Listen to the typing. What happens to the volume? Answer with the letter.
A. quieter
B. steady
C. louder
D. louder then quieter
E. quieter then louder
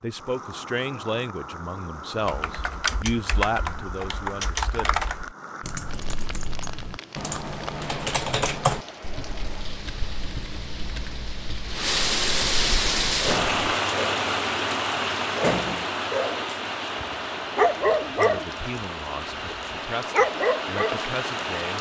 A.